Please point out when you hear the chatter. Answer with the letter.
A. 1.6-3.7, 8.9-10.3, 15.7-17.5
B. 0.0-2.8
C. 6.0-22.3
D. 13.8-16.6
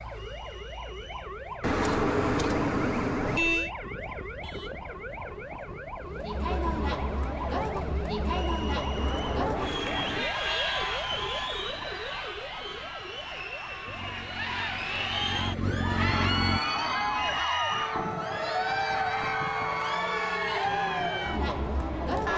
C.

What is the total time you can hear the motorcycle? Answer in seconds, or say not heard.
3 s.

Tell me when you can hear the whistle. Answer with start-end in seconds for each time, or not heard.
0.1-1.3, 8.2-9.3, 17.2-17.9.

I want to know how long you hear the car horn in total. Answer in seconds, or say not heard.
5 s.